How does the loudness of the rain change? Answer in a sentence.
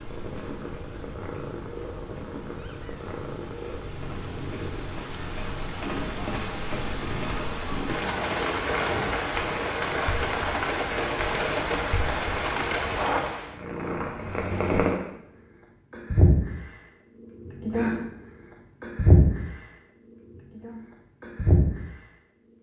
The volume of the rain goes up.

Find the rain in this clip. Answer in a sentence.
The rain can be heard from 0.0 to 13.6 s.